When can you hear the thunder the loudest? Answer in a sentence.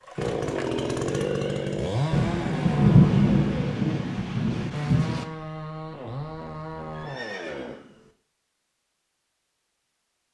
The loudest moment of the thunder is at 3 seconds.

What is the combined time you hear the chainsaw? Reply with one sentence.
The chainsaw can be heard for 8 seconds in total.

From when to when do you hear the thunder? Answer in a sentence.
The thunder can be heard from 2.1 to 5.2 s.